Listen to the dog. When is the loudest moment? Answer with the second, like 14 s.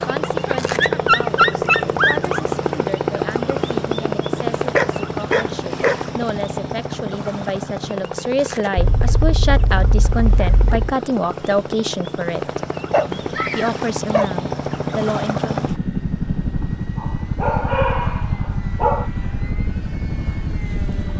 1 s.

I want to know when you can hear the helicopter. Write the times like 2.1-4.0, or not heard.
0.0-21.1.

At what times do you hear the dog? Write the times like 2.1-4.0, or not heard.
0.2-2.4, 4.8-6.0, 8.8-10.9, 12.9-14.3, 16.9-19.1.